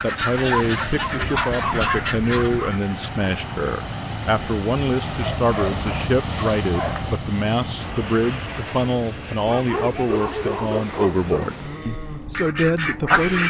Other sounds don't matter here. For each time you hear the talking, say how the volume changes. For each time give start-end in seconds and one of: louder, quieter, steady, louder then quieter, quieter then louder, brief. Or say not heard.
0.0-13.4 steady.